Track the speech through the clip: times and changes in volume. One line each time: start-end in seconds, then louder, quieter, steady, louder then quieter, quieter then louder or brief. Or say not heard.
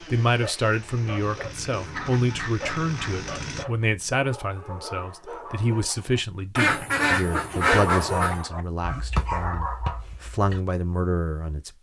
0.0-11.7 steady.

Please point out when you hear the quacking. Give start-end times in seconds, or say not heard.
1.9-3.9, 6.5-8.5.